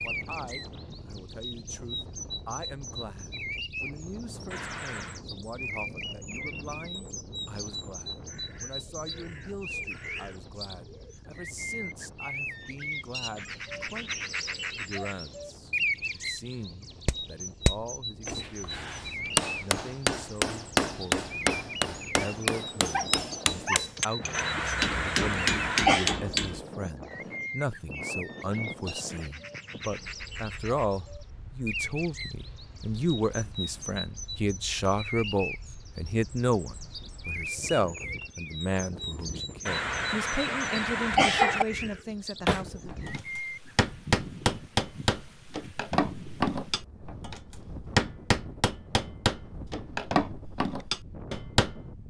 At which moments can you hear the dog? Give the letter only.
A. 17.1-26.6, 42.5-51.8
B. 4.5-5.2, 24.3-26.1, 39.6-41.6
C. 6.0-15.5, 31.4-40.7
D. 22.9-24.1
D.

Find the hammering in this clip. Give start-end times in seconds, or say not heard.
17.1-26.6, 42.5-51.8.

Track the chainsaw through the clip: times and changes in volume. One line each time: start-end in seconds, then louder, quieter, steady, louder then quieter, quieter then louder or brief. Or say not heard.
not heard.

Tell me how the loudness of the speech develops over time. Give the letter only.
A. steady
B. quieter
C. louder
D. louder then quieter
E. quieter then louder
C.